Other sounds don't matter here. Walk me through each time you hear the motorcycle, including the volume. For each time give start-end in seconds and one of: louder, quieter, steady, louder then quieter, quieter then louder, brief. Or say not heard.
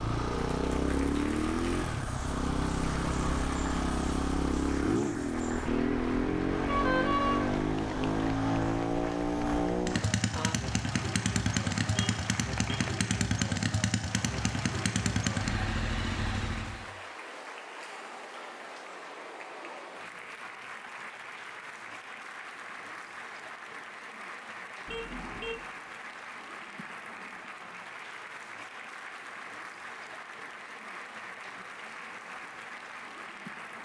0.0-16.9 steady.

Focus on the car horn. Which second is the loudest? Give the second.
7 s.